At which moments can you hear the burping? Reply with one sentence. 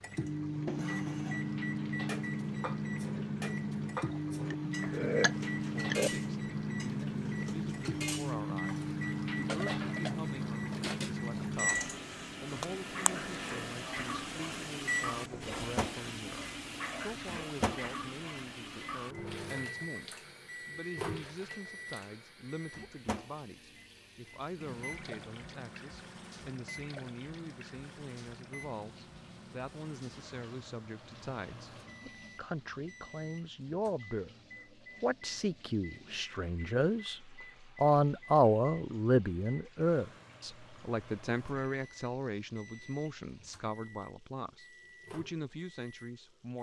The burping can be heard from 4.5 to 6.1 s.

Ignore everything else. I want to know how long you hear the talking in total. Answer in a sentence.
The talking can be heard for 40 seconds in total.